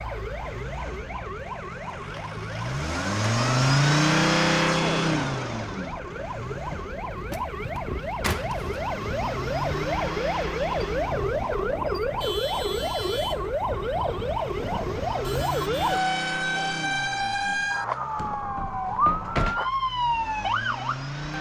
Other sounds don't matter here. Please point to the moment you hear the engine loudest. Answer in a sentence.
The volume of the engine peaks at 4 seconds.